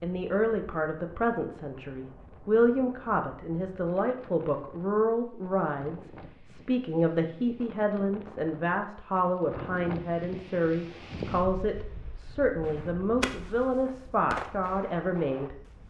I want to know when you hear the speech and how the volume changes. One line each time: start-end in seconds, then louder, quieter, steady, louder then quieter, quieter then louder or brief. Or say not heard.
0.0-15.6 steady.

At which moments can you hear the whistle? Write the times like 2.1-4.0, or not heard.
not heard.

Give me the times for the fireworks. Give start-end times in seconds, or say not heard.
12.7-15.8.